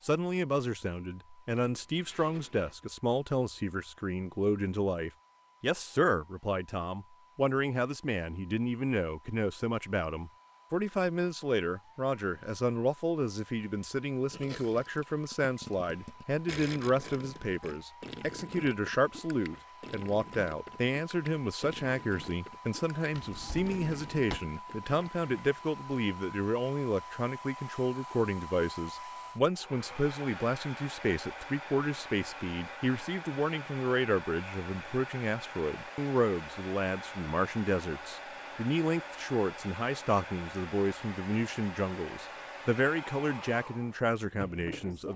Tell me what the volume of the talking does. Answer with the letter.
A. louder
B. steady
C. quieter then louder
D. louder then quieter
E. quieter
B.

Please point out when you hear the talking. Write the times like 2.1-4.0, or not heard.
0.0-45.1.